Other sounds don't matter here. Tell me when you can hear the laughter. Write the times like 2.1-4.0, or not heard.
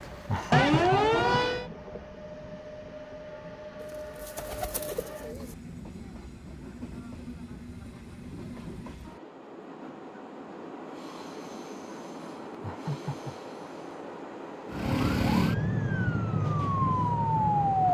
0.2-1.4, 12.6-13.5.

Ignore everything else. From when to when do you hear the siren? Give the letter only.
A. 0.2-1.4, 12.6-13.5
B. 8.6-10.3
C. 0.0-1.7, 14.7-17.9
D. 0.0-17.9
C.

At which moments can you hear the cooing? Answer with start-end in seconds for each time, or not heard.
3.8-5.5.